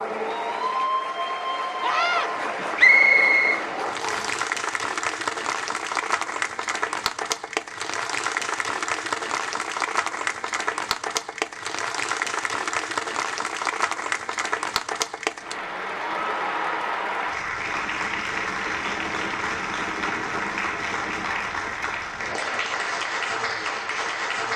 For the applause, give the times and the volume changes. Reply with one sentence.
You can hear the applause from 0.0 to 24.5 s, at a steady volume.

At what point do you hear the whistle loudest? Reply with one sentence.
The volume of the whistle peaks at 3 seconds.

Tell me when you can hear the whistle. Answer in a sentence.
The whistle can be heard from 2.8 to 4.4 s.